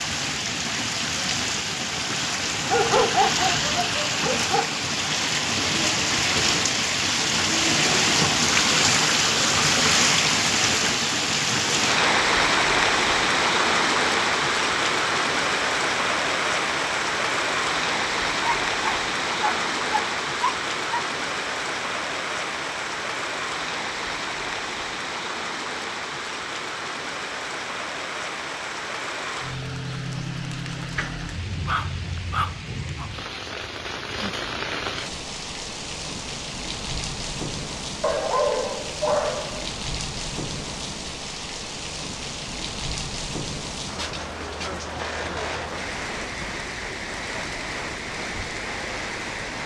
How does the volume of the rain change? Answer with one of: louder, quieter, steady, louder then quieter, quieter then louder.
quieter.